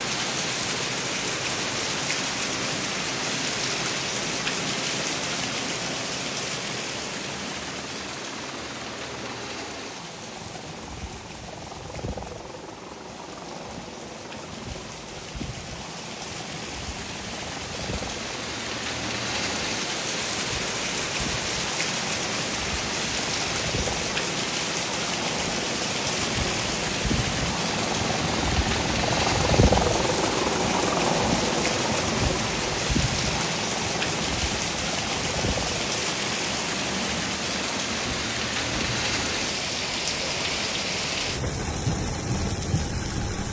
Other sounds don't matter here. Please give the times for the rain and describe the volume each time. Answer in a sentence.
You can hear the rain from 0.0 to 43.4 s, getting quieter then louder.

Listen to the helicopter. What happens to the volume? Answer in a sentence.
The volume of the helicopter goes up, then down.